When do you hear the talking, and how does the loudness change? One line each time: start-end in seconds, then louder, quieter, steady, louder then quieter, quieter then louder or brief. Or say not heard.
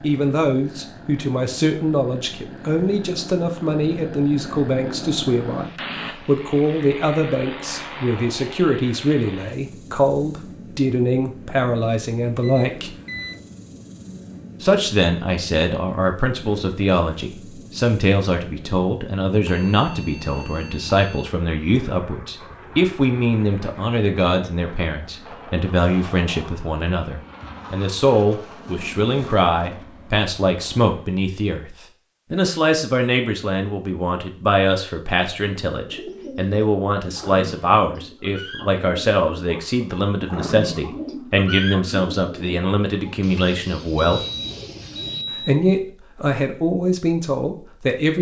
0.0-12.9 steady
14.6-44.2 steady
45.5-48.1 brief.